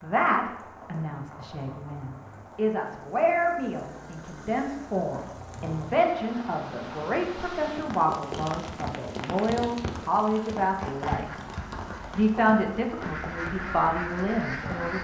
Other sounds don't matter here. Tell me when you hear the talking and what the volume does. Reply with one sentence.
The talking can be heard from 0.0 to 11.4 s, getting louder; and briefly from 12.2 to 14.9 s.